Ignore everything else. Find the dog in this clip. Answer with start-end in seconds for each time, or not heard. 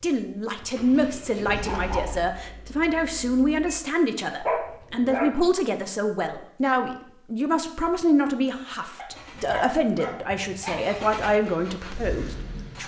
0.9-2.1, 4.5-5.3, 8.9-10.8.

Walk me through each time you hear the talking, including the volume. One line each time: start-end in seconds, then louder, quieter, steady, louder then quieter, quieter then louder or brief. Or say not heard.
0.0-12.8 steady.